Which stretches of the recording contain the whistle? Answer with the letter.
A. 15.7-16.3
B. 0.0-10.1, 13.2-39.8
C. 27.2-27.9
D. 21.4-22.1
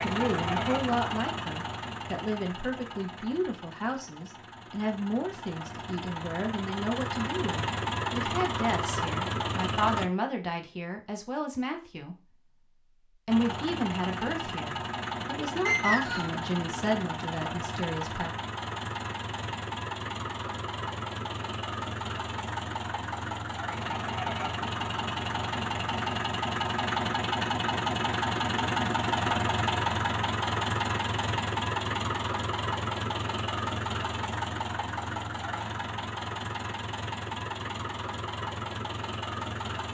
A.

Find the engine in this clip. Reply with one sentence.
The engine can be heard from 0.0 to 10.1 s and from 13.2 to 39.8 s.